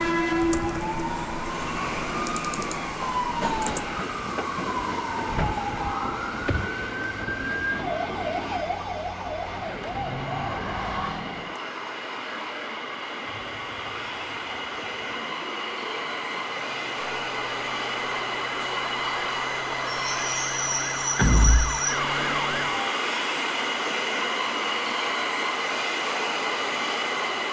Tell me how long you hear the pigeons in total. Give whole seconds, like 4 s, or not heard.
not heard.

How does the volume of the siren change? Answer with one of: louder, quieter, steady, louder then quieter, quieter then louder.
quieter then louder.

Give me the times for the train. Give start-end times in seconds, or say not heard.
0.0-27.4.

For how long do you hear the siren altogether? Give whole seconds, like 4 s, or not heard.
23 s.